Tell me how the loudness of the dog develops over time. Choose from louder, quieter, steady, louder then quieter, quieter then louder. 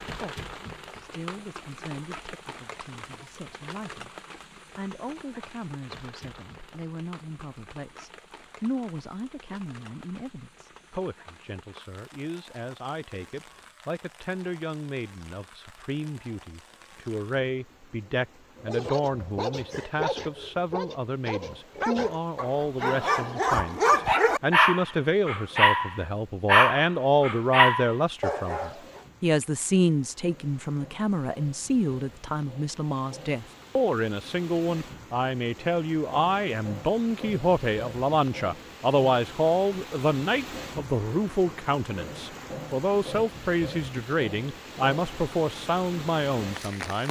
louder.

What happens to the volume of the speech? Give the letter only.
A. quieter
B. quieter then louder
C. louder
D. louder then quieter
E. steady
C.